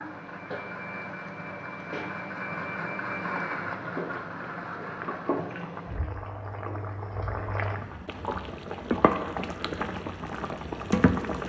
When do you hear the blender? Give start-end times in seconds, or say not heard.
0.0-5.6.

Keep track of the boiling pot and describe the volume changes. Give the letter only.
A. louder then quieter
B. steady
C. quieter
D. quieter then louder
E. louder
E.